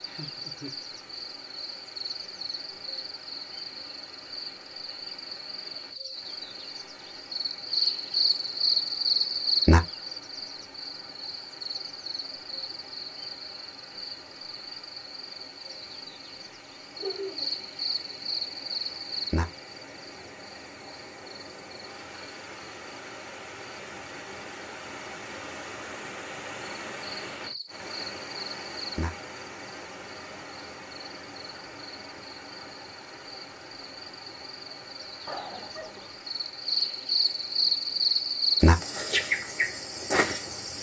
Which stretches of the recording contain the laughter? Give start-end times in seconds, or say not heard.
0.1-0.8, 16.9-17.5, 35.2-36.1.